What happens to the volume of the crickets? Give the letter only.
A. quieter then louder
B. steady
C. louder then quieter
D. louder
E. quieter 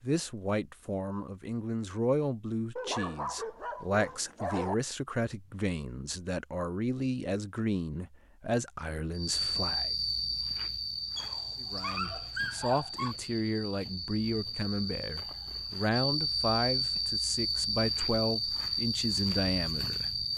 A.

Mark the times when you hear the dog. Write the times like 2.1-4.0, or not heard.
2.8-4.8, 11.2-13.2.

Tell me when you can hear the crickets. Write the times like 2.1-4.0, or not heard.
9.2-20.3.